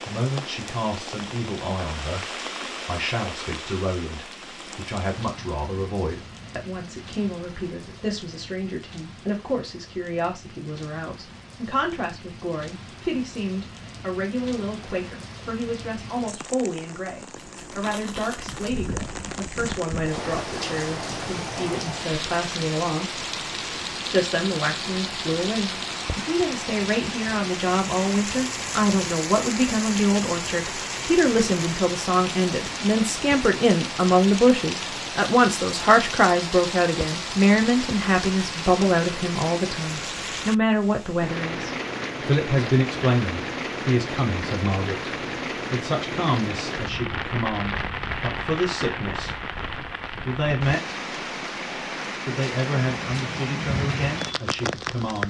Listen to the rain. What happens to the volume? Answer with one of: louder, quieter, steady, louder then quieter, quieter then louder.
louder.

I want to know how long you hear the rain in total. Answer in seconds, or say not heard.
55 s.